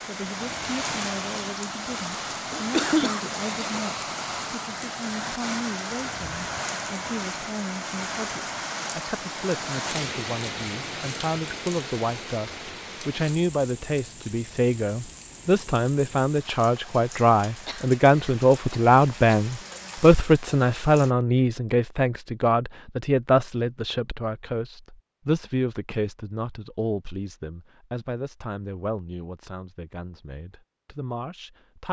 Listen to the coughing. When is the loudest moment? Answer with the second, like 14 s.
3 s.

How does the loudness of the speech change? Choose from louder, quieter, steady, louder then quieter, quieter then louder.
louder then quieter.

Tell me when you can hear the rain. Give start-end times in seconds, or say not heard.
0.0-21.1.